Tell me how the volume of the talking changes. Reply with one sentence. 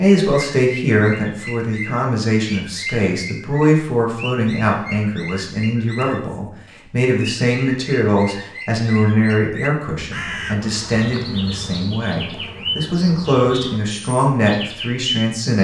The volume of the talking stays about the same.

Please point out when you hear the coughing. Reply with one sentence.
The coughing can't be heard in this clip.